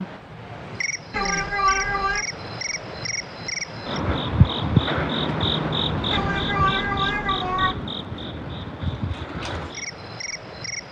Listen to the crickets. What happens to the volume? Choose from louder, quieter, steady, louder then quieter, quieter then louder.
louder then quieter.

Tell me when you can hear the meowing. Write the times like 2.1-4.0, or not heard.
1.1-2.2, 6.1-7.8.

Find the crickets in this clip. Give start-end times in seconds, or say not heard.
0.0-10.8.